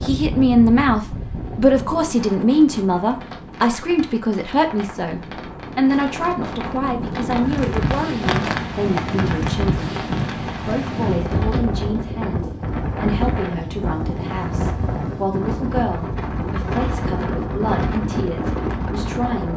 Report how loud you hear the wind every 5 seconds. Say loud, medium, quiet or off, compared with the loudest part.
medium, loud, loud, loud.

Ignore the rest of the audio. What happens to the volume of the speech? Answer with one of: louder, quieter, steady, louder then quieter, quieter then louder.
quieter.